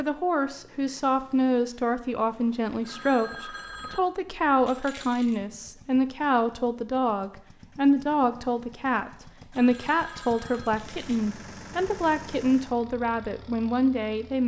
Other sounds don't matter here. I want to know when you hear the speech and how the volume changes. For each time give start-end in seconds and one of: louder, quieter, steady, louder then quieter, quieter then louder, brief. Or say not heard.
0.0-14.4 steady.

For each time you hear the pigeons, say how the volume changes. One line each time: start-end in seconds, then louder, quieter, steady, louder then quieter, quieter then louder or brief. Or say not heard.
not heard.